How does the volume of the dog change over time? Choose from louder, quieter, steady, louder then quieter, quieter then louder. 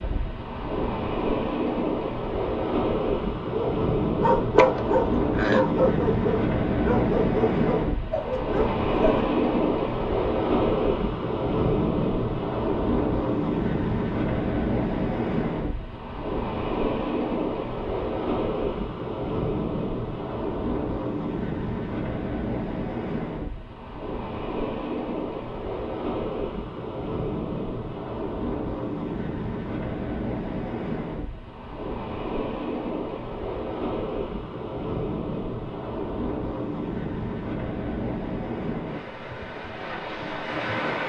quieter.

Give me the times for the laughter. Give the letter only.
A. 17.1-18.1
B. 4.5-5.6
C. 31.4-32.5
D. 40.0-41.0
B.